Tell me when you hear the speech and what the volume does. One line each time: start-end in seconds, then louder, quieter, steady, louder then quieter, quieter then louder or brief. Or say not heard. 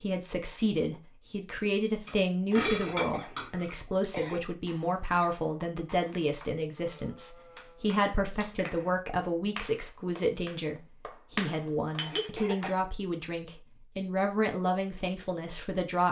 0.0-16.0 steady.